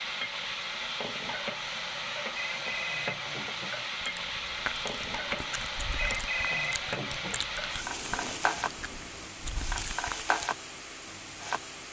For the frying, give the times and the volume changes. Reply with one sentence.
The frying can be heard from 0.0 to 11.8 s, at a steady volume.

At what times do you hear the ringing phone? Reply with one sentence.
You can hear the ringing phone from 2.5 to 3.9 s and from 6.0 to 7.6 s.